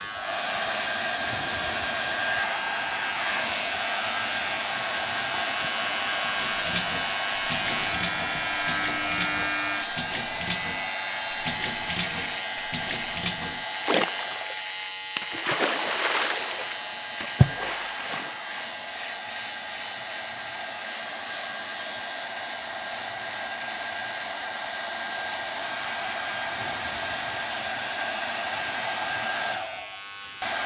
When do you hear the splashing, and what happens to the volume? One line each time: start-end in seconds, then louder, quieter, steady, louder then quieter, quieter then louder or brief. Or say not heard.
6.2-18.4 louder.